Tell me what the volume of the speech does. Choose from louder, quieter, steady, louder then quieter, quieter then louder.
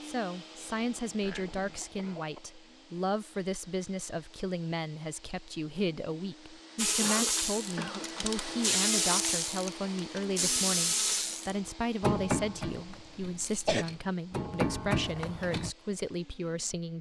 steady.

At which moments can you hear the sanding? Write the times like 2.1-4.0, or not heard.
not heard.